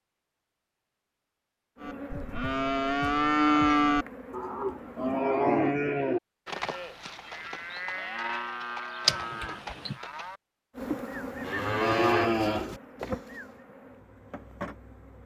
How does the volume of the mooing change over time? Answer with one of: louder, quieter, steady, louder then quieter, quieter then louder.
quieter then louder.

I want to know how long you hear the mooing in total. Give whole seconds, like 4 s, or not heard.
12 s.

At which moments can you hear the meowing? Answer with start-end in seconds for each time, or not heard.
9.1-9.9.